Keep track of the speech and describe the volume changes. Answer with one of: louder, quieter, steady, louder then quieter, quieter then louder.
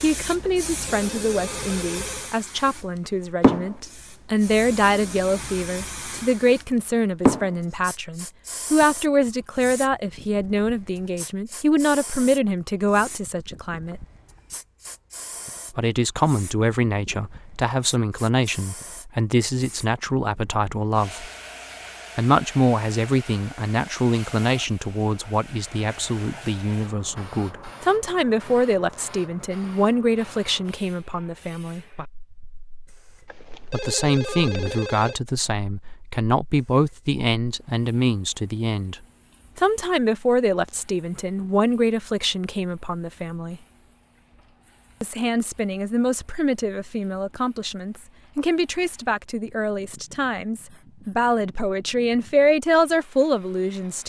steady.